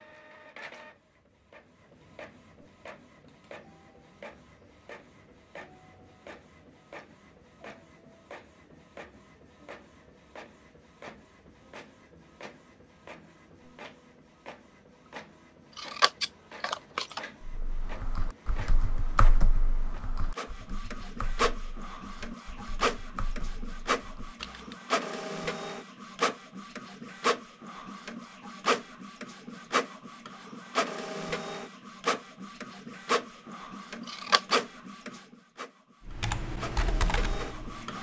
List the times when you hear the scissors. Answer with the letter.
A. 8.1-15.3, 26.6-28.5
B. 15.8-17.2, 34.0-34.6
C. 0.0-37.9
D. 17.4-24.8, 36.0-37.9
B.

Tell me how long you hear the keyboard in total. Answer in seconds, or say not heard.
9 s.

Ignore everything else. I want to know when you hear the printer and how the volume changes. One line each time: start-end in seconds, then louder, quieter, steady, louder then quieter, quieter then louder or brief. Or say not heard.
0.0-37.9 louder.